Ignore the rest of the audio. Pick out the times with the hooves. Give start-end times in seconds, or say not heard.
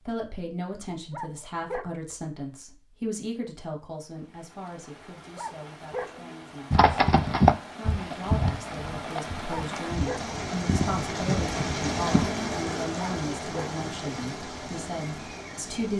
6.7-12.3.